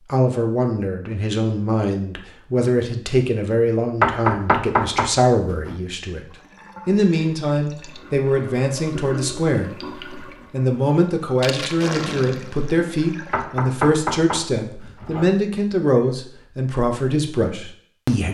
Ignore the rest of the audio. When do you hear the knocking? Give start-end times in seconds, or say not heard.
4.0-5.8, 13.3-15.2.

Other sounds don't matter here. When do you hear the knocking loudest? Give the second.
4 s.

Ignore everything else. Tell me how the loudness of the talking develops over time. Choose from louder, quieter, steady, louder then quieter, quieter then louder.
steady.